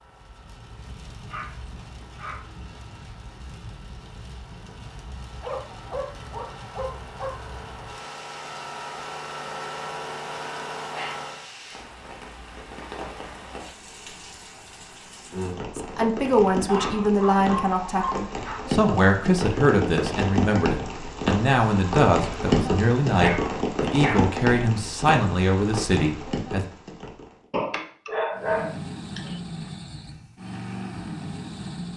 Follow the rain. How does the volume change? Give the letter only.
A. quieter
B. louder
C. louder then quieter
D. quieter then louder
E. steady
B.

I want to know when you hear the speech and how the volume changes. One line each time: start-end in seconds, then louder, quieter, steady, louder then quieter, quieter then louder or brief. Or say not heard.
15.8-26.6 steady.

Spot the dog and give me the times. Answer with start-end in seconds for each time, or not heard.
1.3-2.5, 5.4-7.3, 10.8-11.2, 16.6-18.7, 23.1-24.3, 27.5-29.3.